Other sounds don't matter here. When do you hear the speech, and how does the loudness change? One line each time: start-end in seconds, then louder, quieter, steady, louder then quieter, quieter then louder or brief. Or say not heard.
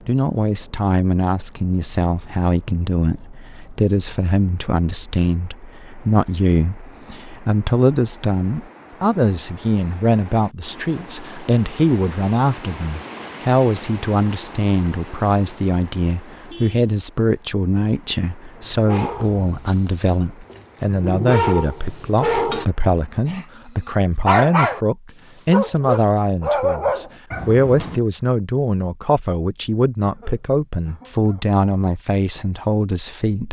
0.1-33.4 steady.